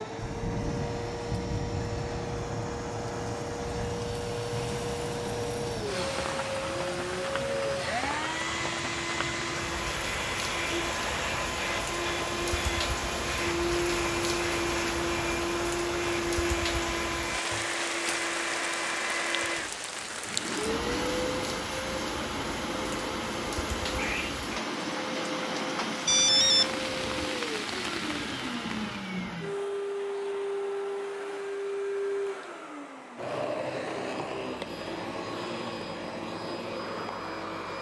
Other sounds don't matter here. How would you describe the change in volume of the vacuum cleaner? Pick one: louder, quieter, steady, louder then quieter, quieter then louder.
steady.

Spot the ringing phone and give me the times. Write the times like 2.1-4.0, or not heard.
26.1-27.2.